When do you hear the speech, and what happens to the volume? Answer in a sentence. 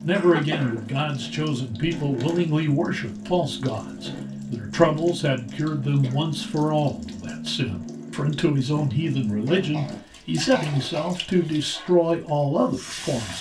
You can hear the speech from 0.0 to 13.3 s, at a steady volume.